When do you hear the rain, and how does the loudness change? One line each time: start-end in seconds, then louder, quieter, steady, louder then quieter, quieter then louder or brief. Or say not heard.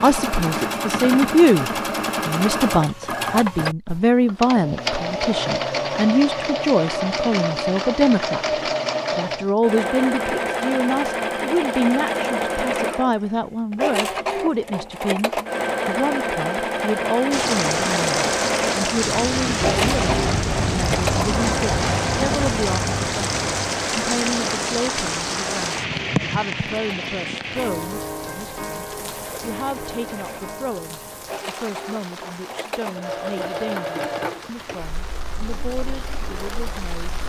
17.3-37.2 quieter.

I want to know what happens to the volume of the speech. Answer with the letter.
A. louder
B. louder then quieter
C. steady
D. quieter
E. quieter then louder
D.